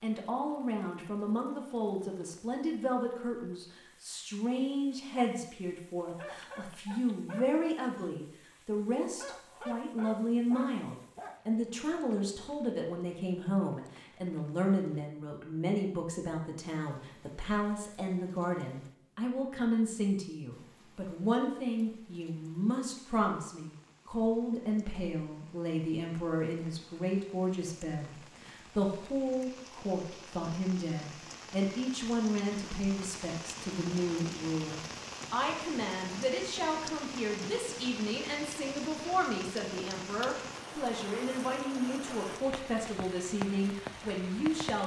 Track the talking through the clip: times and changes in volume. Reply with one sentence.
You can hear the talking from 0.0 to 44.8 s, at a steady volume.